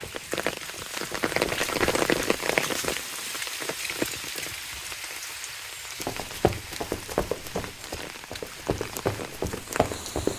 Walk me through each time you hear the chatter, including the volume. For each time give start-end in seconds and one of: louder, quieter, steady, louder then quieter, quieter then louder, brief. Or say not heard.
not heard.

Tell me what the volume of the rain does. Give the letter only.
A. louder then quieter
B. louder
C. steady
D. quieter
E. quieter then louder
D.